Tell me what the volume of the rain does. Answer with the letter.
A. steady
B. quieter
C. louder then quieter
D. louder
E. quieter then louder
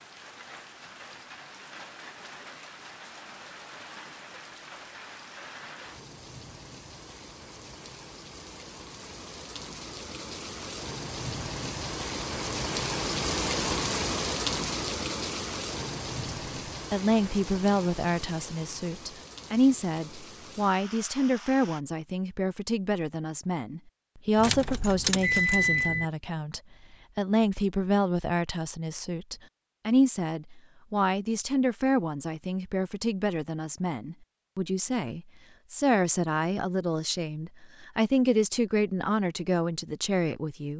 C.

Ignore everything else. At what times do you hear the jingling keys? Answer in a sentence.
You can hear the jingling keys from 24.4 to 26.1 s.